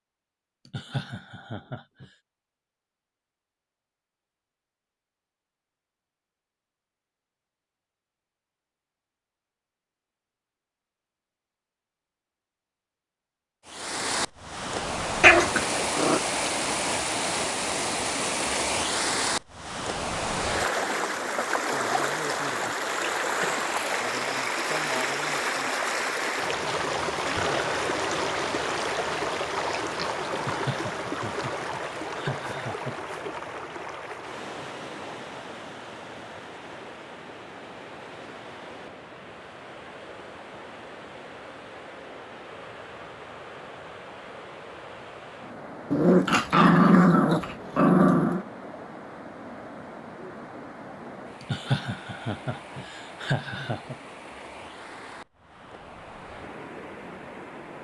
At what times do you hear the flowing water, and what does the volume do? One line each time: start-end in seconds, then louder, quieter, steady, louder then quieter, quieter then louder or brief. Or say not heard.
13.7-57.7 quieter.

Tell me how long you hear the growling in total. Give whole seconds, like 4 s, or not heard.
5 s.